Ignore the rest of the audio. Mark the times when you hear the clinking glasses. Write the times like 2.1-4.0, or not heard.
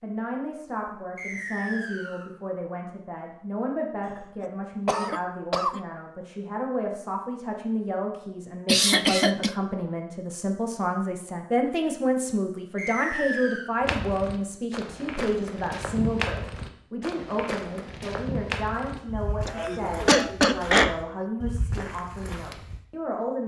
not heard.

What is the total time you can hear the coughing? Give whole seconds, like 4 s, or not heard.
4 s.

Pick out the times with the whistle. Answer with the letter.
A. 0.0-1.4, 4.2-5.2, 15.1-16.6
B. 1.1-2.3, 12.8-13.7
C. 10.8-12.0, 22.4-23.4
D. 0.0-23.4
B.